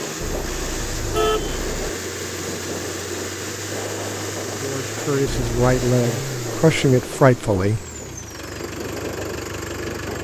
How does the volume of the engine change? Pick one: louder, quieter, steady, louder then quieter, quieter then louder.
steady.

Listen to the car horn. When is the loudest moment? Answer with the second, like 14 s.
1 s.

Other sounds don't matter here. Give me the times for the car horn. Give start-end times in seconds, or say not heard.
0.2-1.9, 5.2-5.7.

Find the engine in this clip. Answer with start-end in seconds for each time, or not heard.
0.0-10.1.